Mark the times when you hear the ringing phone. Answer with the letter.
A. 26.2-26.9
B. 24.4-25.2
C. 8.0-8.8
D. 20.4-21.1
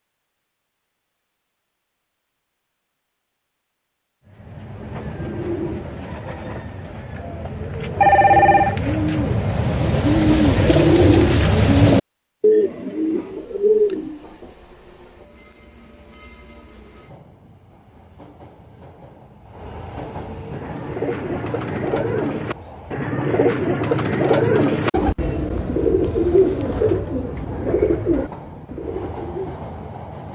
C.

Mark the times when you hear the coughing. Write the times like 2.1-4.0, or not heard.
not heard.